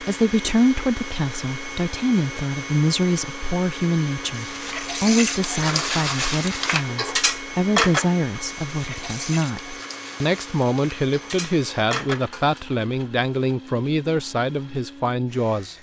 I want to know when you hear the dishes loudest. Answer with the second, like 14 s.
8 s.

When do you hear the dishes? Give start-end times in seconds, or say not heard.
4.2-12.6.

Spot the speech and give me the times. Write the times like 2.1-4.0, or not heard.
0.0-15.7.